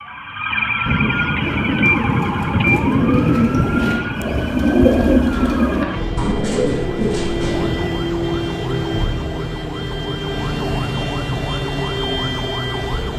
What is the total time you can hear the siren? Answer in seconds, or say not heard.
13 s.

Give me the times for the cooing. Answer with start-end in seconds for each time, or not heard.
1.4-7.8.